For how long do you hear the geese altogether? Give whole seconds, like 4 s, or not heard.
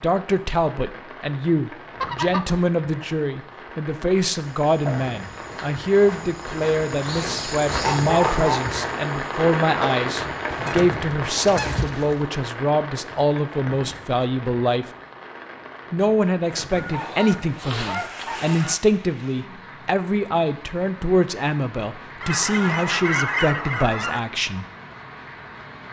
8 s.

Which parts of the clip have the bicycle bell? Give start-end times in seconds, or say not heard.
not heard.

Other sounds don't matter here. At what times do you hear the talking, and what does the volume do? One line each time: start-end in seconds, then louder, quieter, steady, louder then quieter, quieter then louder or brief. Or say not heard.
0.0-14.8 steady
15.9-24.6 steady.